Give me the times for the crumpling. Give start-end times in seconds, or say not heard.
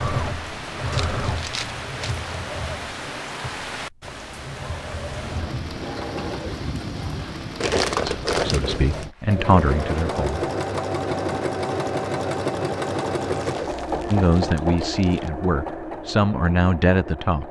0.9-2.2, 7.6-9.1, 13.4-15.3.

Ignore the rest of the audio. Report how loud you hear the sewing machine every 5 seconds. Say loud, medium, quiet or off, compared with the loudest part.
medium, medium, loud, medium.